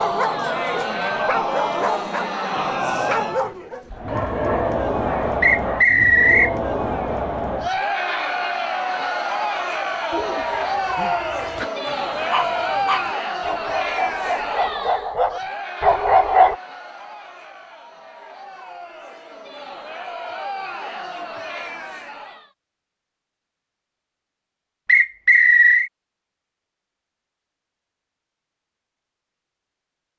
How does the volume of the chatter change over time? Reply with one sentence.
The volume of the chatter goes down.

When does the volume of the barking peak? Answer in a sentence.
The loudest moment of the barking is at 16 seconds.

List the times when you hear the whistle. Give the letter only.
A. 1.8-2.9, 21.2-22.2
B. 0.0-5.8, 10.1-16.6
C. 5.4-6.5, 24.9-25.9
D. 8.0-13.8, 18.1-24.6
C.